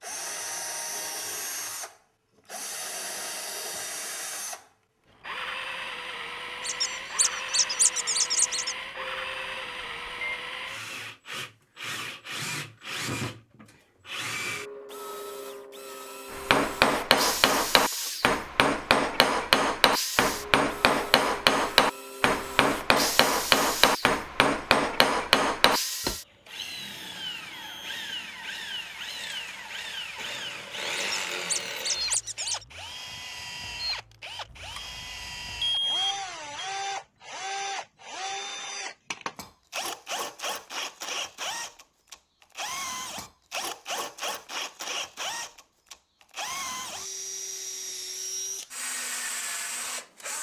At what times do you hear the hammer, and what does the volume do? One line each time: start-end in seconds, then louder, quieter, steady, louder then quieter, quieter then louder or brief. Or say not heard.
16.3-26.1 steady.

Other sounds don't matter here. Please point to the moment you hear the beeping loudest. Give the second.
36 s.